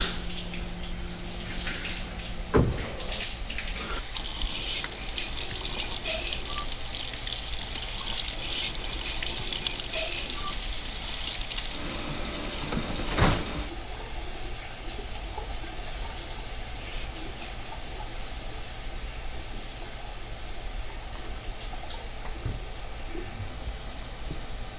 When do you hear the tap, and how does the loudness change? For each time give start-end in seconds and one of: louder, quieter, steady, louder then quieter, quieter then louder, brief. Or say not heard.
0.0-24.7 quieter.